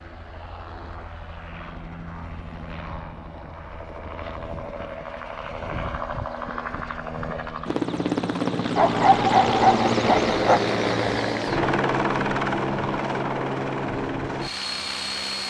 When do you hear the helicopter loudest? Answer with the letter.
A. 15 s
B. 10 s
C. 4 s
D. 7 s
B.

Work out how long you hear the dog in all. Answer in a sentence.
The dog can be heard for 2 seconds in total.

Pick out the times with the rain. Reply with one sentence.
The rain can't be heard in this clip.